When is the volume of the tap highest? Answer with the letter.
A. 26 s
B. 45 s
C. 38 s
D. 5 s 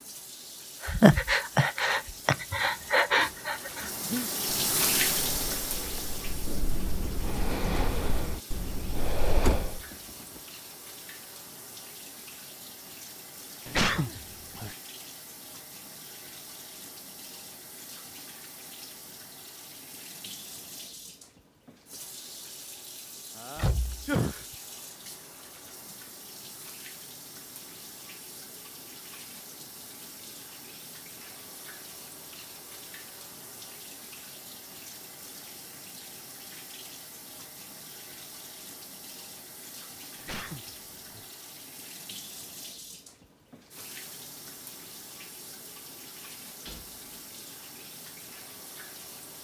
D.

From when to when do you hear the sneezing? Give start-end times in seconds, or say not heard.
13.7-14.8, 23.4-24.4, 40.1-41.2.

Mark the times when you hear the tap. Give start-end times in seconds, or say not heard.
0.0-49.3.